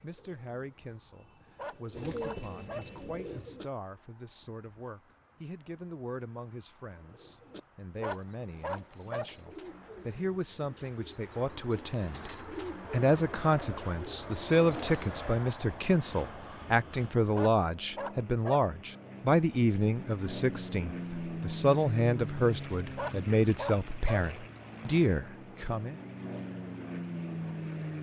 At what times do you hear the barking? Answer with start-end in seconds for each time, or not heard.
1.6-3.0, 8.0-9.4, 17.4-18.7, 22.9-24.3.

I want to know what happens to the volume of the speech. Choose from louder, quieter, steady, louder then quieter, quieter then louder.
louder.